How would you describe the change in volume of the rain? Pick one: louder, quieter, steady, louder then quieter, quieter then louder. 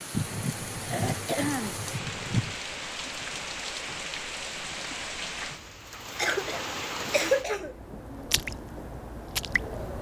steady.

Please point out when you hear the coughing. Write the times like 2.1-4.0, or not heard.
0.1-2.5, 6.2-8.0.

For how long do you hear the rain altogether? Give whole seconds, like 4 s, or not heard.
10 s.